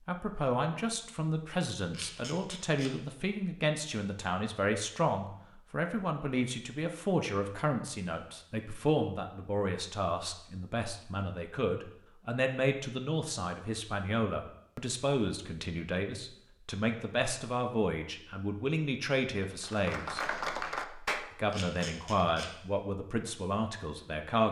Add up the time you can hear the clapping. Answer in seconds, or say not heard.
2 s.